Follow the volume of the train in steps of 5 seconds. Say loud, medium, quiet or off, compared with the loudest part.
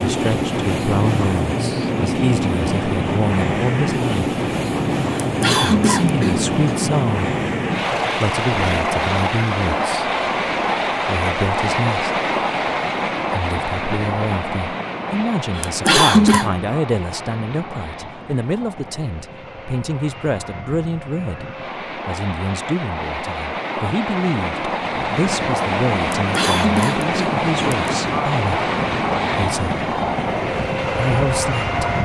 loud, loud, loud, medium, medium, loud, loud.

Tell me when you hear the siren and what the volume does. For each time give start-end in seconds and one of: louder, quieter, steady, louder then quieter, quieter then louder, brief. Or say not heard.
not heard.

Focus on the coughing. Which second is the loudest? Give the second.
16 s.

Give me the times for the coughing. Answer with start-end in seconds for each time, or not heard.
5.2-6.8, 15.6-16.5, 26.1-27.9.